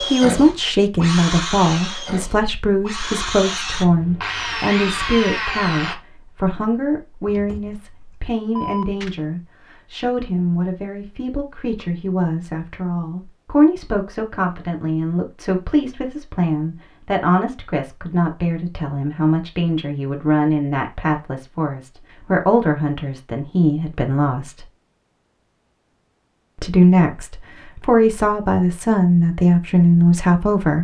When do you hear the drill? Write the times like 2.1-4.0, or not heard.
0.0-6.0.